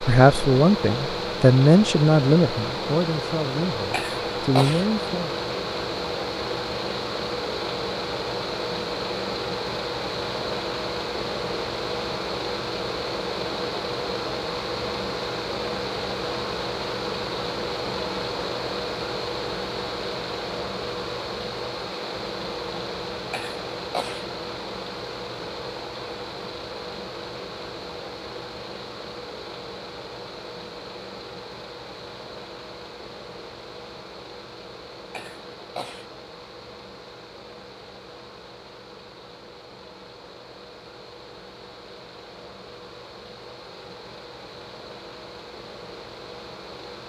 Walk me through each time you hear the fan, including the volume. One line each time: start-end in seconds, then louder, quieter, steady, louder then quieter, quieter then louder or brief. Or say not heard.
0.0-47.0 quieter.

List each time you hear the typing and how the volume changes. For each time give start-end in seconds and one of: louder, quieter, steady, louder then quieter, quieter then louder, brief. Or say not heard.
not heard.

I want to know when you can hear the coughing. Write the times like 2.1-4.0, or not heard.
3.9-4.8, 23.3-24.2, 35.1-36.1.